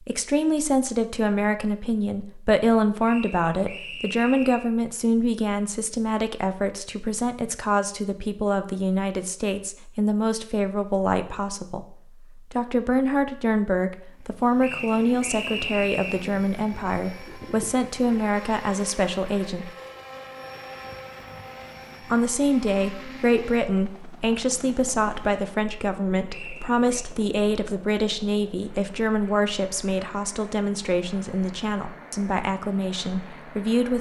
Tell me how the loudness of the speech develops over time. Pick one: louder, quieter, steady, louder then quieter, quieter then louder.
steady.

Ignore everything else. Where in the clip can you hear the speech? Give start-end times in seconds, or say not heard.
0.0-19.7, 22.1-33.9.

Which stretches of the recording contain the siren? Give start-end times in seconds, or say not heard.
not heard.